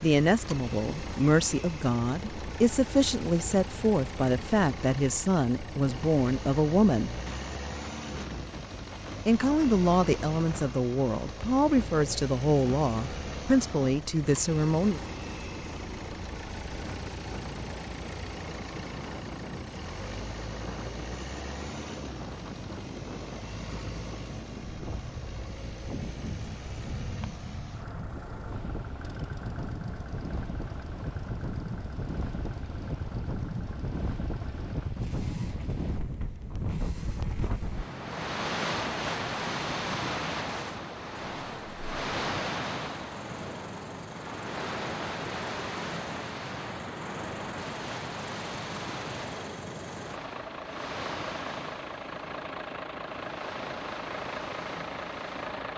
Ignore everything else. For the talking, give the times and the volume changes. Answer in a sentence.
You can hear the talking from 0.0 to 7.1 s, at a steady volume; and from 9.2 to 15.0 s, at a steady volume.